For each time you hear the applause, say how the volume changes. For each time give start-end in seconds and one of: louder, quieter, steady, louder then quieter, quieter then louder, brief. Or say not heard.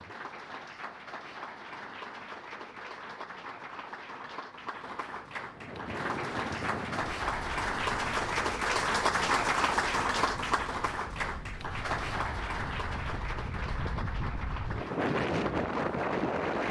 0.0-16.6 louder then quieter.